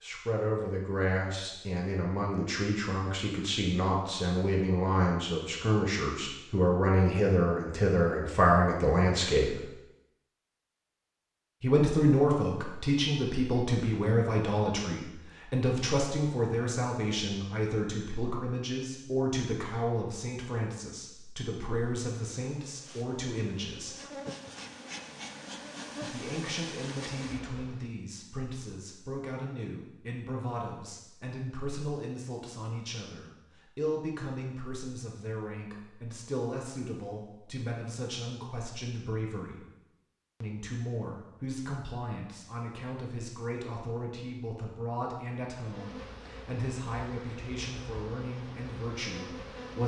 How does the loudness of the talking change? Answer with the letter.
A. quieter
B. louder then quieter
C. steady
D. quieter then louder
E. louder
A.